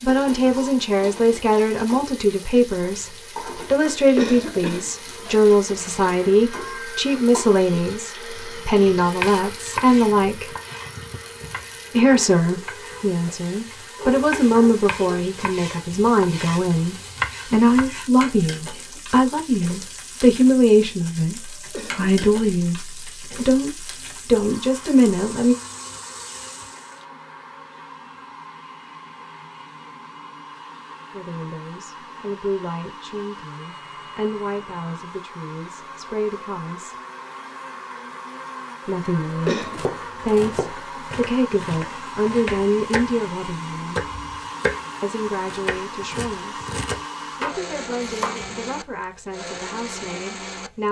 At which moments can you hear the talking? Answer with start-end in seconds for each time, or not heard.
0.0-10.6, 11.9-25.6, 31.1-37.0, 38.9-44.0, 45.0-46.7, 47.4-50.8.